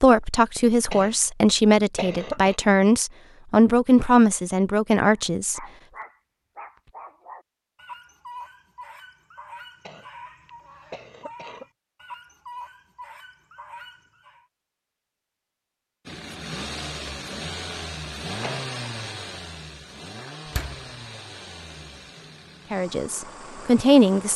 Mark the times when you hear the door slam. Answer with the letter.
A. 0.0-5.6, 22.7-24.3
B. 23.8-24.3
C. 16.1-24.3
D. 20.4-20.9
D.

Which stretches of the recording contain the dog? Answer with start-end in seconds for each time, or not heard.
5.2-14.4.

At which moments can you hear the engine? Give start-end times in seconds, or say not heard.
16.1-24.3.